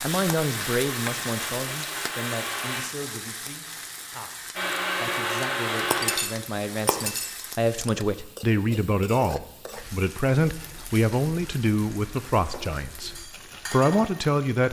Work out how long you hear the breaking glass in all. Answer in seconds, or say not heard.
2 s.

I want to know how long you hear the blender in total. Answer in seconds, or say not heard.
4 s.